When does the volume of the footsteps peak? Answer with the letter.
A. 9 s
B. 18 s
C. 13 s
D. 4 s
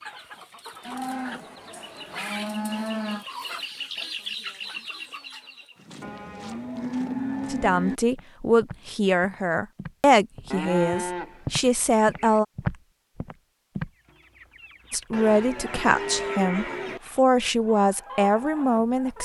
C.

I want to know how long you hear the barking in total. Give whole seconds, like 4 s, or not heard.
not heard.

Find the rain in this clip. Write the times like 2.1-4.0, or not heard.
not heard.